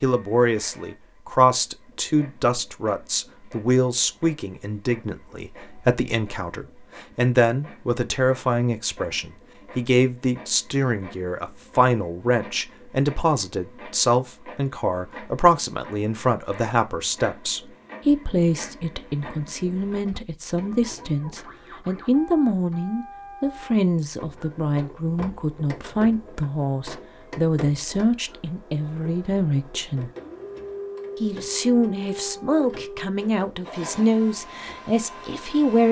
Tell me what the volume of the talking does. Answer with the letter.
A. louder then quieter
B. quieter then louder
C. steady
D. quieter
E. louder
C.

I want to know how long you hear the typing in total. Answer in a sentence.
You can't hear the typing here.